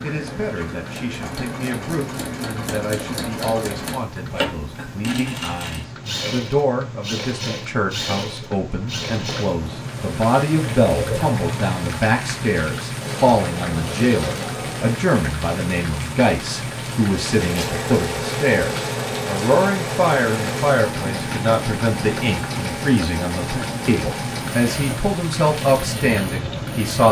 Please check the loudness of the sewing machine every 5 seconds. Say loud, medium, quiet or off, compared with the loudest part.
loud, loud, loud, loud, loud, medium.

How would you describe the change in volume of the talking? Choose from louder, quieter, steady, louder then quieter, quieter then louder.
louder.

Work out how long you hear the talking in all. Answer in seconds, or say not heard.
27 s.